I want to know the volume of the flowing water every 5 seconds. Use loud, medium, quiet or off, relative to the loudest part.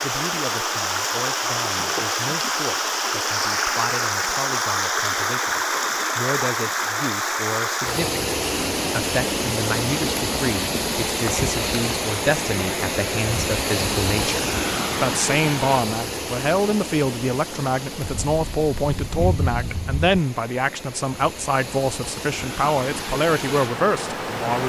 loud, loud, loud, medium, medium.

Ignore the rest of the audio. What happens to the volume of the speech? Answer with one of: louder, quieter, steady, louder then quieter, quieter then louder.
louder.